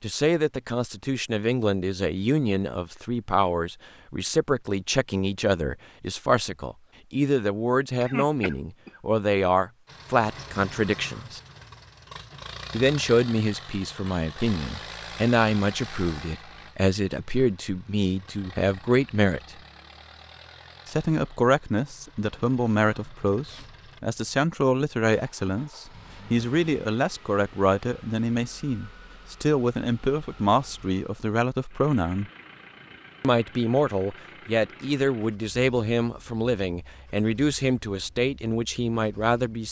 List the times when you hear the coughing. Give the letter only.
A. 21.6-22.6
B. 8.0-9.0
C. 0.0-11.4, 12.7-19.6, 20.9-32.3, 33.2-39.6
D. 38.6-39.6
B.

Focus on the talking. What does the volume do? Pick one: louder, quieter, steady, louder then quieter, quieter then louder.
steady.